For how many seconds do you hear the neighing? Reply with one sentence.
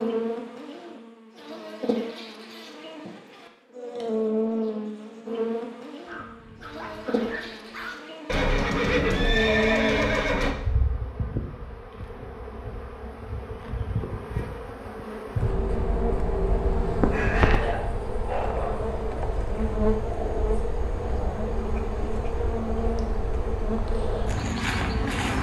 You can hear the neighing for 2 seconds altogether.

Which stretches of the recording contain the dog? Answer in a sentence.
The dog can be heard from 6.0 to 8.0 s and from 17.1 to 18.9 s.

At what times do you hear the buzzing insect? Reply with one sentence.
You can hear the buzzing insect from 0.0 to 25.3 s.